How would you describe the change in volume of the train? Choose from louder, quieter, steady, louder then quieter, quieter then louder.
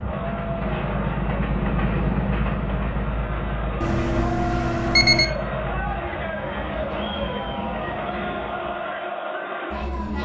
quieter.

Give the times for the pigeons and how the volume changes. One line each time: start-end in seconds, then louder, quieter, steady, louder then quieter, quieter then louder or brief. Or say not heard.
not heard.